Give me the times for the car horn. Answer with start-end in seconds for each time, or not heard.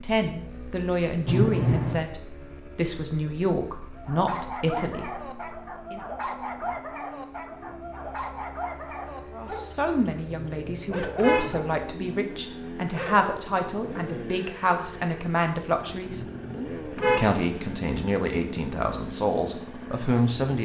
1.2-2.0, 10.3-11.6, 16.1-17.3.